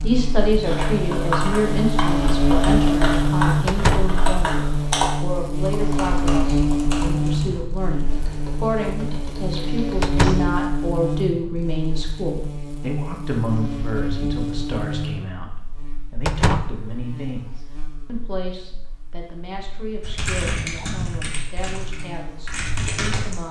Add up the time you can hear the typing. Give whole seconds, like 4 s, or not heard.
13 s.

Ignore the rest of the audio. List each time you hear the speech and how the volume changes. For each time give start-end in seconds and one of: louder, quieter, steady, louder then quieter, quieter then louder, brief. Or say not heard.
0.0-23.4 quieter.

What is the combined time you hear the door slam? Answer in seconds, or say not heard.
2 s.